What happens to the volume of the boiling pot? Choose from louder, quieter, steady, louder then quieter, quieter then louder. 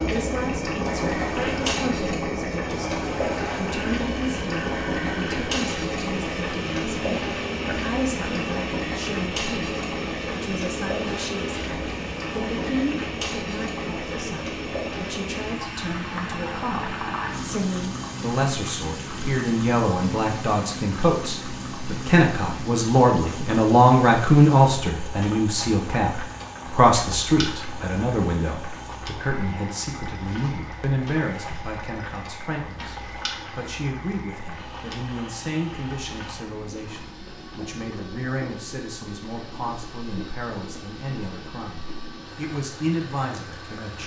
quieter.